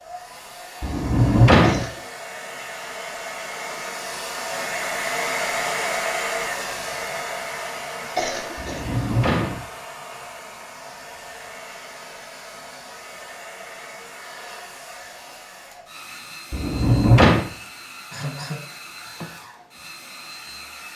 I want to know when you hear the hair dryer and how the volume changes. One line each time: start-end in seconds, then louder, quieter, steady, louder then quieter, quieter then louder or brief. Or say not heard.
0.0-20.9 louder then quieter.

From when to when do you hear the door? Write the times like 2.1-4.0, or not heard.
0.8-1.9, 8.6-9.6, 16.5-17.5.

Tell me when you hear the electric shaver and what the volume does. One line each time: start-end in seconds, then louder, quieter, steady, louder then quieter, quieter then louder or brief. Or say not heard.
not heard.